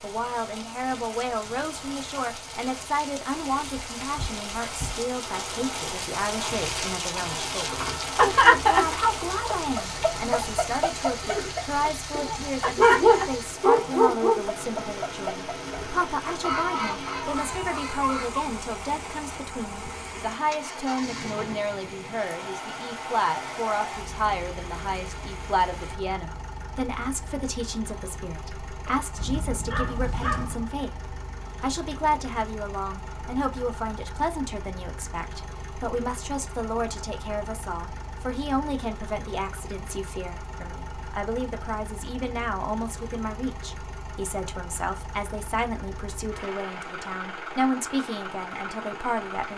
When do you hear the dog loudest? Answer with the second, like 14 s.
13 s.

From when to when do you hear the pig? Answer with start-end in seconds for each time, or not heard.
not heard.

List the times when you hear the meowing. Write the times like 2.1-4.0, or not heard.
29.1-30.7.